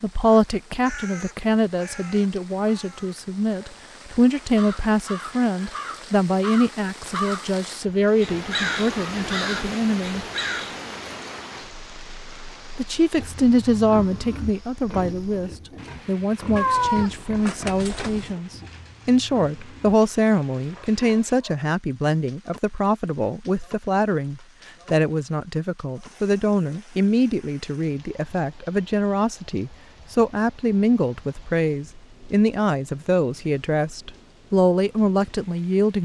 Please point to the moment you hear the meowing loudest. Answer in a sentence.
The volume of the meowing peaks at 17 seconds.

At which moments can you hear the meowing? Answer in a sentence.
The meowing can be heard from 16.6 to 18.3 s.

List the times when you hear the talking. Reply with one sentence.
You can hear the talking from 0.0 to 10.2 s and from 12.8 to 36.0 s.